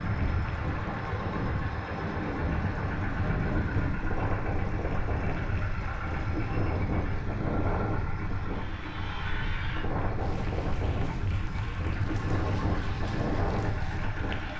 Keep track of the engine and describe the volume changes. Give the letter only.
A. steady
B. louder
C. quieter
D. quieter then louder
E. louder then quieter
A.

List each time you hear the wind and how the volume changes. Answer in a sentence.
You can hear the wind from 0.0 to 14.5 s, at a steady volume.